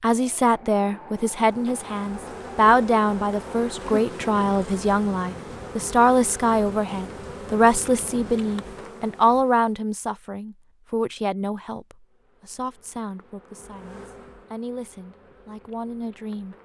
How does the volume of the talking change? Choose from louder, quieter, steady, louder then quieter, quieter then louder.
quieter.